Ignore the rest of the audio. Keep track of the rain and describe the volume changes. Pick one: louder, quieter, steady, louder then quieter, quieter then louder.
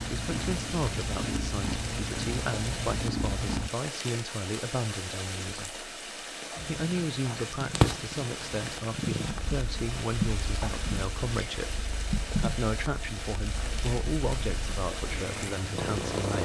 steady.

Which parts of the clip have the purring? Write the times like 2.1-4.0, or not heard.
0.0-3.7, 6.5-16.4.